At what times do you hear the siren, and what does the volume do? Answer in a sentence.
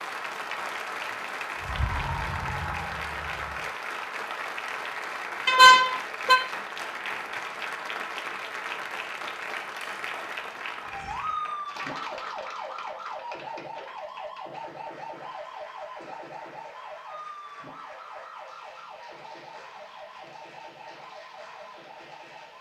The siren can be heard briefly from 1.6 to 3.7 s; and from 10.8 to 22.5 s, getting quieter.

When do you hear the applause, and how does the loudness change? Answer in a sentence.
You can hear the applause from 0.0 to 22.5 s, getting quieter.